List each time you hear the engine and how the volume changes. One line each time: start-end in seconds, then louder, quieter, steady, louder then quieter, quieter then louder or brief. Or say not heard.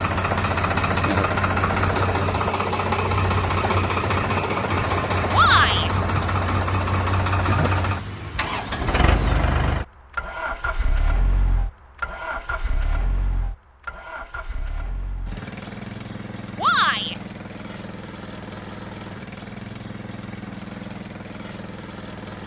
0.0-22.4 quieter.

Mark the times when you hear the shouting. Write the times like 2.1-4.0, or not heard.
5.3-5.9, 16.6-17.1.